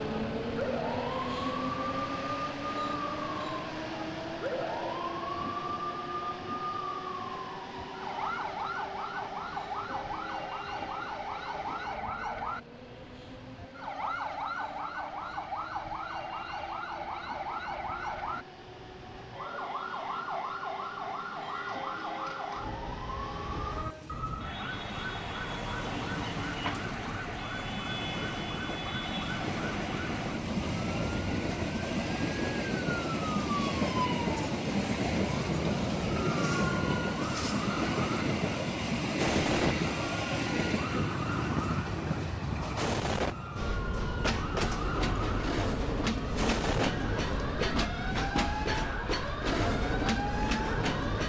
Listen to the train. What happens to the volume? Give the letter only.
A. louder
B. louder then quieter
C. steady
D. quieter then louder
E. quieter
D.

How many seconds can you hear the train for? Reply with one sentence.
The train can be heard for 51 seconds in total.